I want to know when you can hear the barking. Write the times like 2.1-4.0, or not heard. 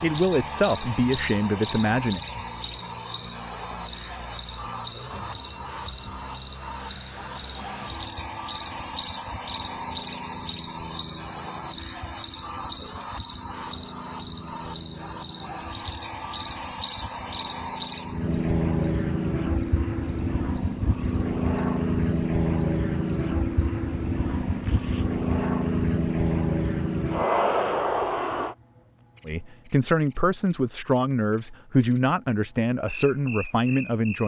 not heard.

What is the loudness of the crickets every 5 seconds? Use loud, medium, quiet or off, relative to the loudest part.
loud, loud, loud, loud, quiet, quiet, quiet.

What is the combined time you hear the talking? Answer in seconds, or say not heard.
7 s.